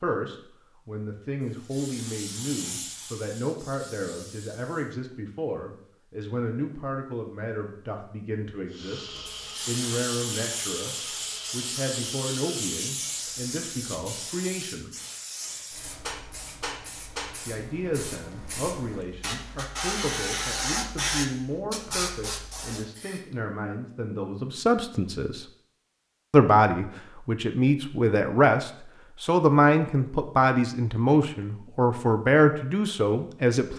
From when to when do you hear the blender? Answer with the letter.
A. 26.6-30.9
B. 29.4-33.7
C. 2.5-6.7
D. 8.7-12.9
D.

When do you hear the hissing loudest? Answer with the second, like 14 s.
21 s.